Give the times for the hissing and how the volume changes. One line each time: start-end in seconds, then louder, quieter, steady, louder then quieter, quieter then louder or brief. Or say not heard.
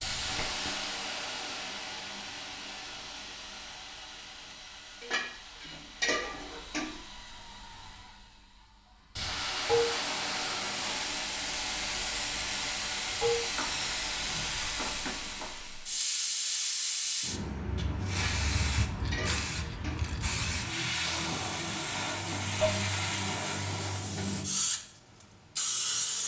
0.0-26.2 louder.